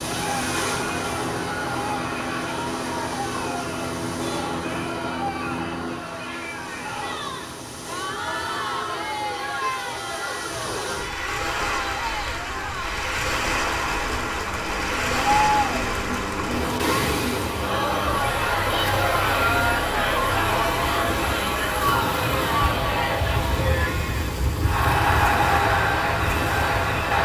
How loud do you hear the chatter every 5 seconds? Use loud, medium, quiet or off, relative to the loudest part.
medium, medium, medium, loud, loud, loud.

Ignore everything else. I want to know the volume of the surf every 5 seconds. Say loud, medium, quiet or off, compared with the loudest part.
medium, medium, loud, loud, loud, loud.